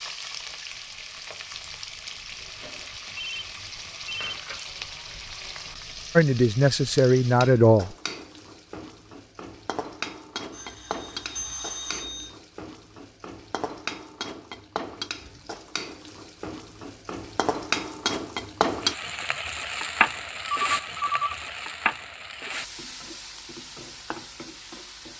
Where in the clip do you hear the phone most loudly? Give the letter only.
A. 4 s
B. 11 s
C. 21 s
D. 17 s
C.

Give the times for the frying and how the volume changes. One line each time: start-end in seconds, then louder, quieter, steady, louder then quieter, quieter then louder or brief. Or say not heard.
0.0-25.1 louder.